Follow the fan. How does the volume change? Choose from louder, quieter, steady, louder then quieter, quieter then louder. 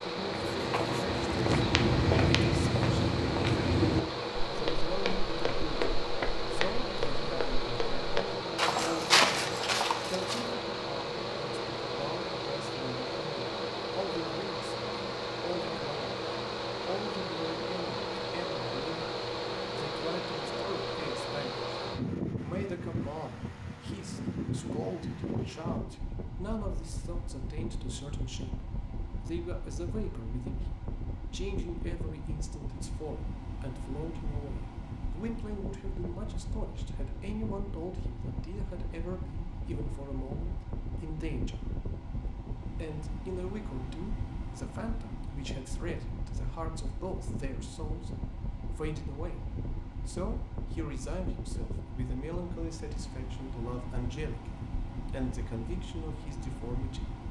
quieter.